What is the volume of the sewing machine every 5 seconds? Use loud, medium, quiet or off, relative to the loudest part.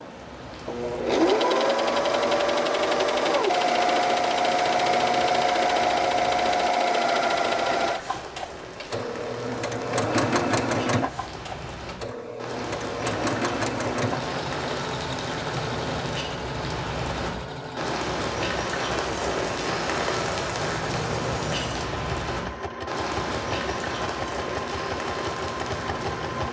loud, loud, medium, medium, medium, medium.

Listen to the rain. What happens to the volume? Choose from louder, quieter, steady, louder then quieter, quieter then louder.
louder.